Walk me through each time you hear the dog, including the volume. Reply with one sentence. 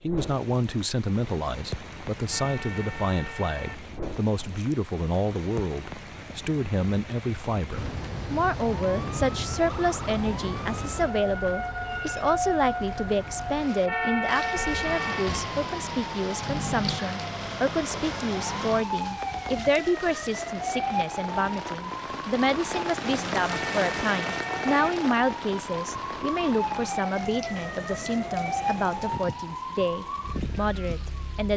The dog can't be heard in this clip.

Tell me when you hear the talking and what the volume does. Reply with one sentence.
You can hear the talking from 0.0 to 31.5 s, at a steady volume.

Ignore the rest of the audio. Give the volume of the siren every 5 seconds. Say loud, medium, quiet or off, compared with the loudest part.
off, loud, loud, loud, loud, loud, medium.